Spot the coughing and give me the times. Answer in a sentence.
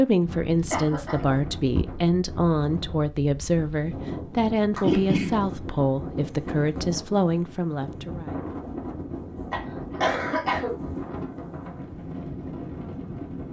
The coughing can be heard from 0.7 to 1.8 s, from 4.8 to 5.3 s and from 9.5 to 10.8 s.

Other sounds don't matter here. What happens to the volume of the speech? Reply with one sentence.
The loudness of the speech stays about the same.